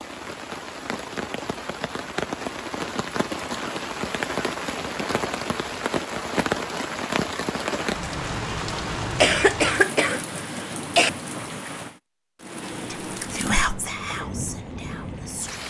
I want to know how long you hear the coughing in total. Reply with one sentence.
The coughing can be heard for 2 seconds in total.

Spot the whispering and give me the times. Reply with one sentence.
The whispering can be heard from 12.7 to 15.6 s.